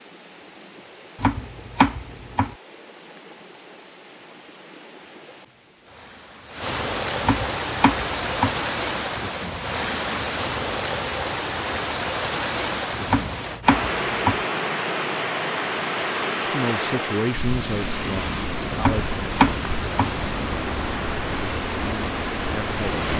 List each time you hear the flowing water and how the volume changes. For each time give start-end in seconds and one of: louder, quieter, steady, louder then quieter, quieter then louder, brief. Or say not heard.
0.0-23.1 louder.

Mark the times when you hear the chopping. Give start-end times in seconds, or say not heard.
1.2-2.5, 7.2-8.6, 13.1-14.4, 18.8-20.1.